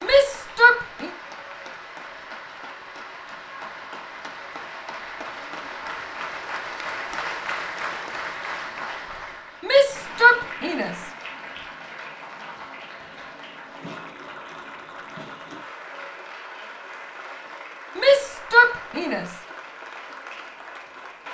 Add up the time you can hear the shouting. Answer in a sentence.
You can hear the shouting for 4 seconds altogether.